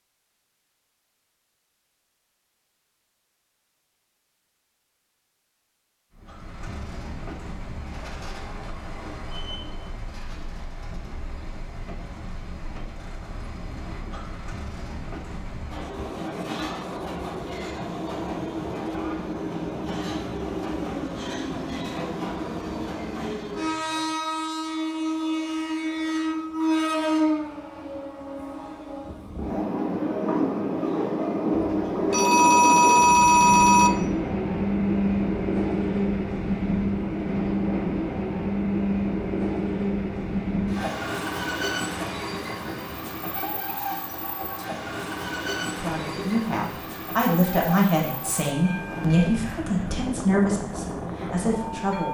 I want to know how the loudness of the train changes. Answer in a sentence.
The volume of the train goes up, then down.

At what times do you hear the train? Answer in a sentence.
You can hear the train from 6.1 to 52.0 s.